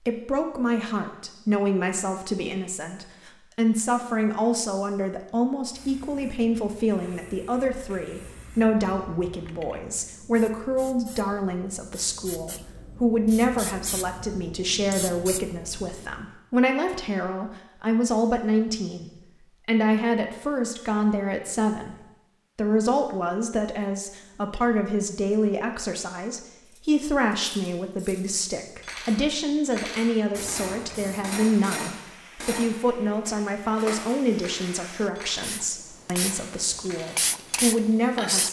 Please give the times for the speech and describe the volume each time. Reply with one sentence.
The speech can be heard from 0.0 to 38.4 s, at a steady volume.